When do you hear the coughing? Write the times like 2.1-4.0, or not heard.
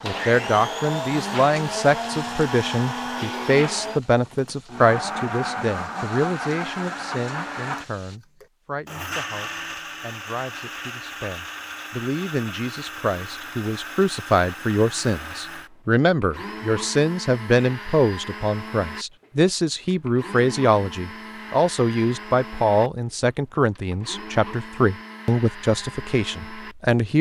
not heard.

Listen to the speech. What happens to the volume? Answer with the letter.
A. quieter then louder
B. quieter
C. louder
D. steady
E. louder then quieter
A.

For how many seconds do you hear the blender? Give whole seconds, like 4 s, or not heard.
27 s.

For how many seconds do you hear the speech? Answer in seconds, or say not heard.
27 s.